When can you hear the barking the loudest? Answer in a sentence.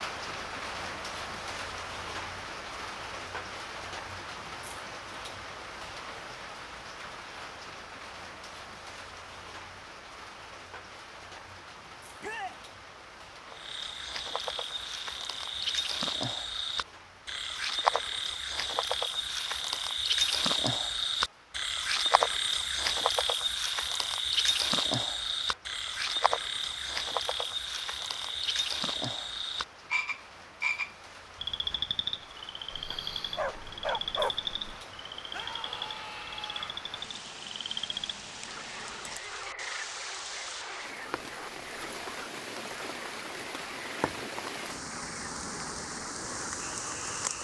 The volume of the barking peaks at 34 seconds.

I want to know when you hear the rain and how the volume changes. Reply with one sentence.
The rain can be heard from 0.0 to 47.3 s, getting quieter then louder.